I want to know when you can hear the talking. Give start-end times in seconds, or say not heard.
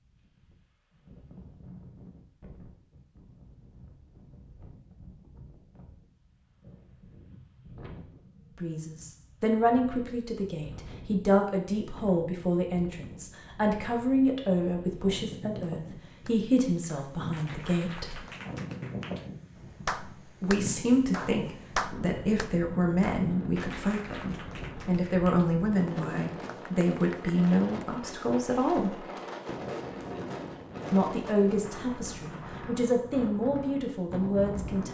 8.6-18.2, 20.4-29.1, 30.9-34.8.